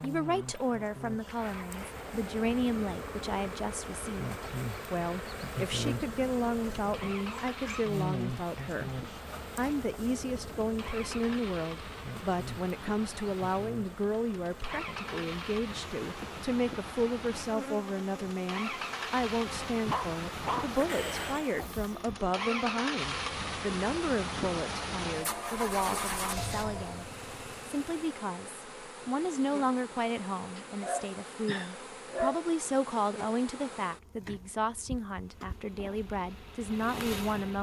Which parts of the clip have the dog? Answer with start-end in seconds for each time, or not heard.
7.5-7.9, 19.8-21.6, 30.6-32.5.